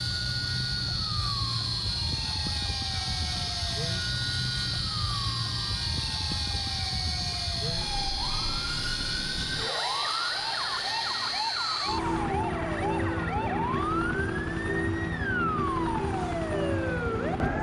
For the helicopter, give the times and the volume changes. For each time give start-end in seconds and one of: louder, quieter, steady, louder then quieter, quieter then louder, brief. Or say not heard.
0.0-17.5 steady.